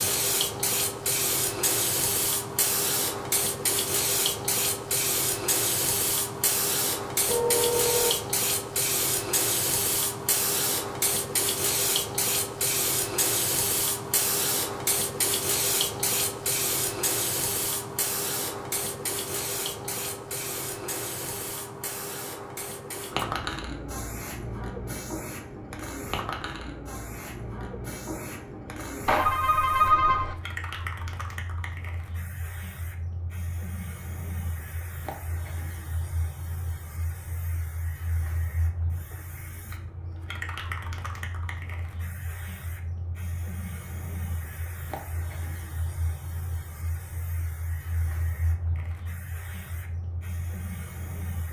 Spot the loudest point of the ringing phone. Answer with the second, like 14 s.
30 s.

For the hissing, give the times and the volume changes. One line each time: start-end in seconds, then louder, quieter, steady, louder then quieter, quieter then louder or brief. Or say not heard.
0.0-51.4 quieter.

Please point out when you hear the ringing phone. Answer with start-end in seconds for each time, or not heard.
7.2-8.1, 29.1-30.4.